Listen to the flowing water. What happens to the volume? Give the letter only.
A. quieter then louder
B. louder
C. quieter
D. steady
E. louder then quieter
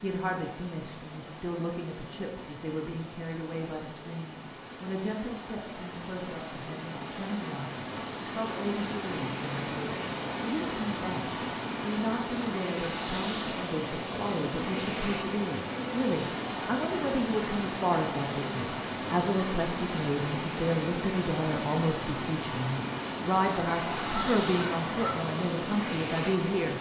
B.